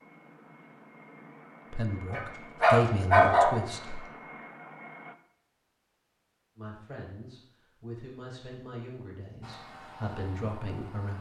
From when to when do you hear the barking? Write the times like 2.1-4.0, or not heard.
2.1-4.0.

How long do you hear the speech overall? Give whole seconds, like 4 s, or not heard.
7 s.